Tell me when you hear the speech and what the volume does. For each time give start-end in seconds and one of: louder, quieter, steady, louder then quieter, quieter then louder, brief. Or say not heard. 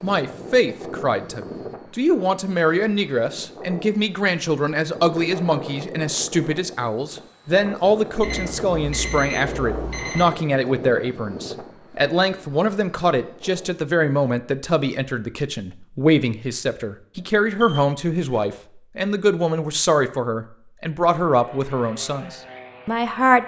0.0-23.4 steady.